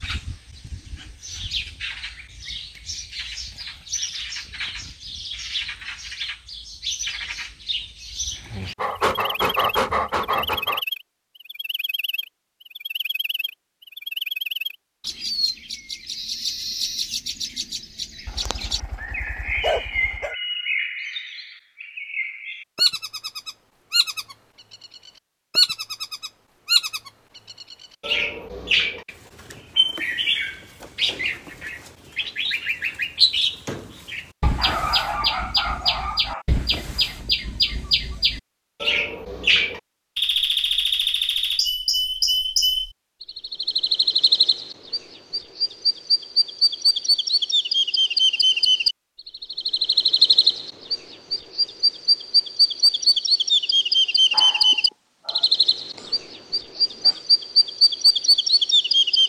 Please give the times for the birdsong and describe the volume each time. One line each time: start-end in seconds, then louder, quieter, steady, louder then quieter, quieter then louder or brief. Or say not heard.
0.0-59.2 louder.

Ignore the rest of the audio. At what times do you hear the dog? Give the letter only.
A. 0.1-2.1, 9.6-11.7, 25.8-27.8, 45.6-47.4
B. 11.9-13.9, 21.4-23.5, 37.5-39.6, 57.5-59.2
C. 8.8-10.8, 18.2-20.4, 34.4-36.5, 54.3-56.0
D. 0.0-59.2
C.